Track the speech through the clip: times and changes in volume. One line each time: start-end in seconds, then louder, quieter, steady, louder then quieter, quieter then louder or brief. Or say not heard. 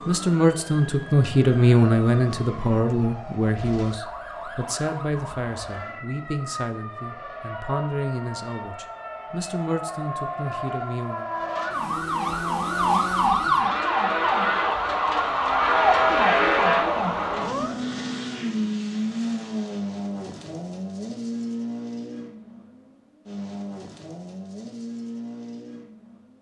0.1-11.3 quieter.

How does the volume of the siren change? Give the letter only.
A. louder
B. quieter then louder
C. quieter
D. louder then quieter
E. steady
A.